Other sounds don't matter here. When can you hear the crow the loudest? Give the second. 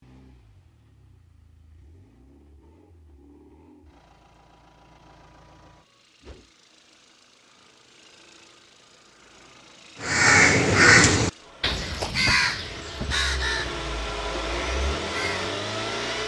11 s.